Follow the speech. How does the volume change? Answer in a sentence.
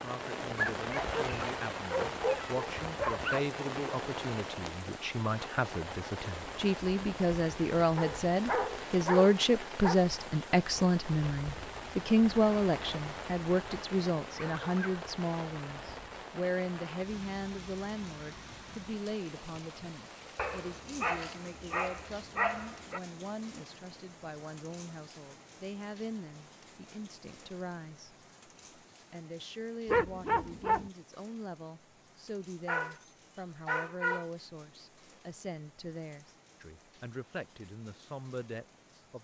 The loudness of the speech goes up, then down.